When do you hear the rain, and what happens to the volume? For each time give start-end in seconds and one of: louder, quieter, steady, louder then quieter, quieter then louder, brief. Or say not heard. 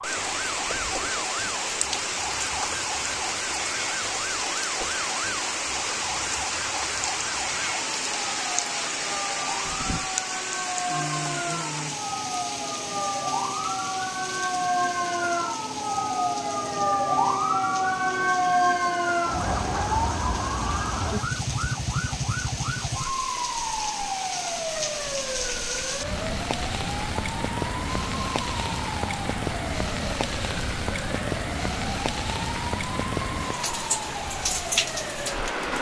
0.0-35.7 quieter then louder.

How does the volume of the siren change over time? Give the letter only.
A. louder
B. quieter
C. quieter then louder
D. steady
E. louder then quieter
E.